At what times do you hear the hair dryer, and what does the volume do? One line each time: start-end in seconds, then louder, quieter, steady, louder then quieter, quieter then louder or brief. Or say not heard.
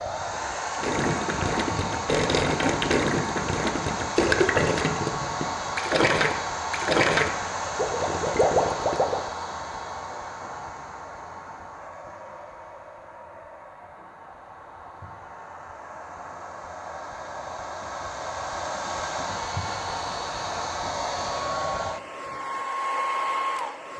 0.0-23.9 quieter then louder.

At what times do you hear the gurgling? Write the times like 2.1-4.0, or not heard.
0.8-9.2.